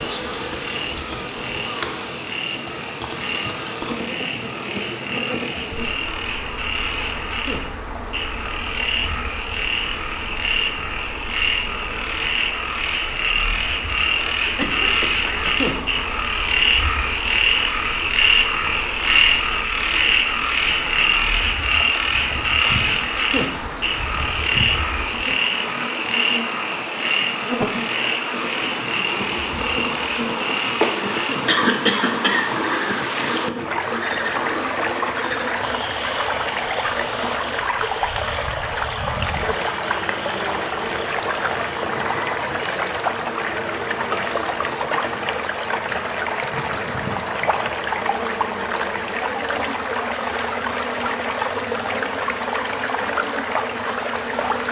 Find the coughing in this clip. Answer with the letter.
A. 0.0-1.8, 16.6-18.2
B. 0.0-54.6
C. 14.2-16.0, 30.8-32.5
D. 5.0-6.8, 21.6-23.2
C.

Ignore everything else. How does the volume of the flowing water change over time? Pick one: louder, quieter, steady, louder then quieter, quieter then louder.
louder.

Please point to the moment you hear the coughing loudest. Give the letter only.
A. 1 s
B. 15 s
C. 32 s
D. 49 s
C.